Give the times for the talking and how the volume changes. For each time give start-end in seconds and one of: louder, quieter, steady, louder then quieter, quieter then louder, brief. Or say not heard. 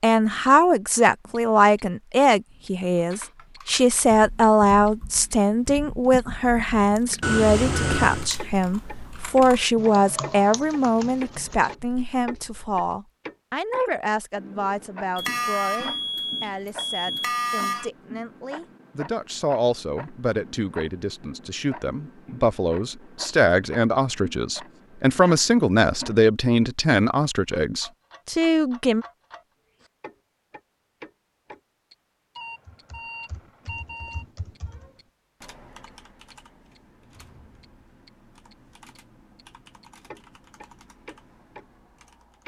0.0-29.1 quieter then louder.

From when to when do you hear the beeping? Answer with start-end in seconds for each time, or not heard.
7.2-8.3, 15.2-17.9, 32.4-34.2.